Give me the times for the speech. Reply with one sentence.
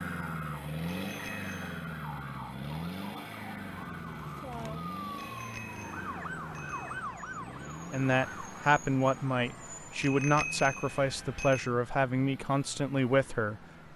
The speech can be heard from 7.9 to 13.9 s.